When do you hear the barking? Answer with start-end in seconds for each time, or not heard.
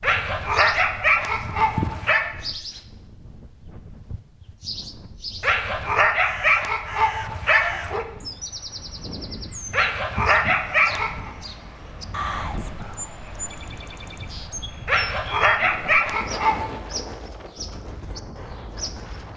0.0-2.3, 5.4-8.1, 9.7-11.3, 14.8-16.8.